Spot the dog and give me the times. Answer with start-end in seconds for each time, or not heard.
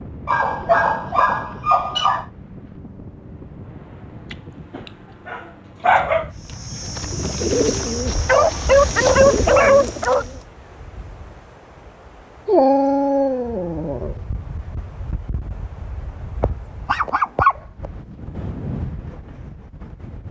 0.2-2.2, 4.3-6.3, 8.2-10.2, 12.4-14.2, 16.4-17.9.